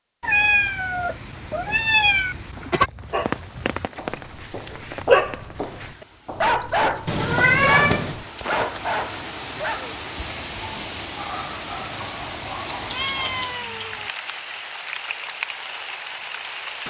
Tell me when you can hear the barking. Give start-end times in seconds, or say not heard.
3.1-13.3.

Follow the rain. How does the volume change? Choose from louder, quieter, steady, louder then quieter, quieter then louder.
quieter then louder.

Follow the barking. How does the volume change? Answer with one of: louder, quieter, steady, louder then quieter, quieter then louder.
quieter.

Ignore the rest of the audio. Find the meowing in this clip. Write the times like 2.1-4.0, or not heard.
0.2-2.9, 7.0-8.2, 12.7-14.1.